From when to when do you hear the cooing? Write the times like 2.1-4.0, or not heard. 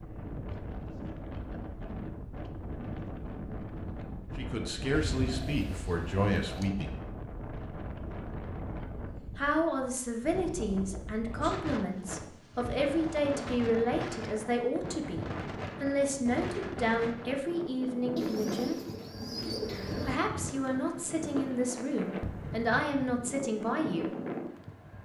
4.9-6.7, 18.1-20.1.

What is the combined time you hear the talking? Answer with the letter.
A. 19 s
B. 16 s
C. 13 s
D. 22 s
B.